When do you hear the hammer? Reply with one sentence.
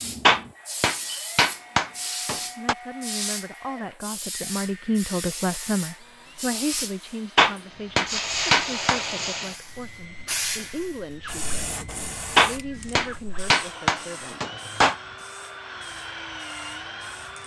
The hammer can be heard from 0.2 to 2.8 s, from 7.3 to 9.0 s and from 12.3 to 14.9 s.